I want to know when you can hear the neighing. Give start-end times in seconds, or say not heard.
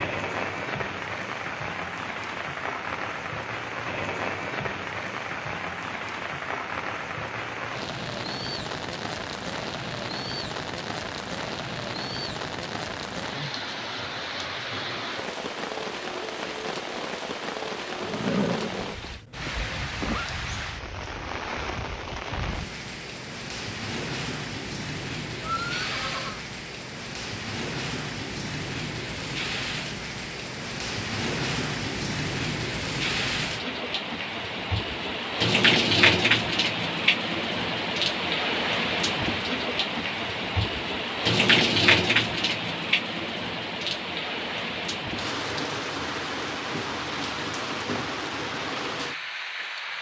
18.0-20.3, 25.4-26.4.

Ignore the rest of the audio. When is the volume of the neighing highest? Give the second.
18 s.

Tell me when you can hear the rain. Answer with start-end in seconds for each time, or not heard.
0.0-49.9.